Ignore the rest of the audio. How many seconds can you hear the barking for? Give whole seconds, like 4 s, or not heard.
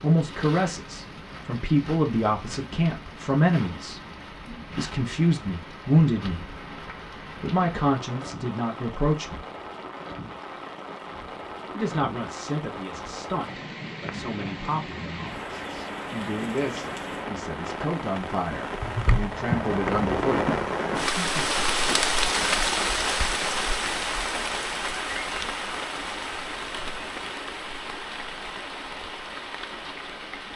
not heard.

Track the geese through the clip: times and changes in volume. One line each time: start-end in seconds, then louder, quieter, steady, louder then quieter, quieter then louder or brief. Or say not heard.
not heard.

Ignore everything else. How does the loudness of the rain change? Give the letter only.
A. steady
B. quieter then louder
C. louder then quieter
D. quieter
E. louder
C.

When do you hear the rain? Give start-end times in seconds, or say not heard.
0.0-30.5.